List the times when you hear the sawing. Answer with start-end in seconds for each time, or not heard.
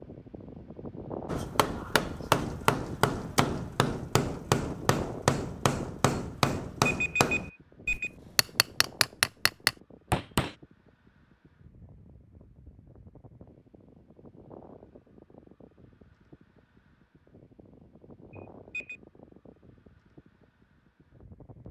not heard.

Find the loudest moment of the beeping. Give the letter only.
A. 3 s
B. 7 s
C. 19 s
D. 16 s
B.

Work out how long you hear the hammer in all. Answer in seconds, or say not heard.
9 s.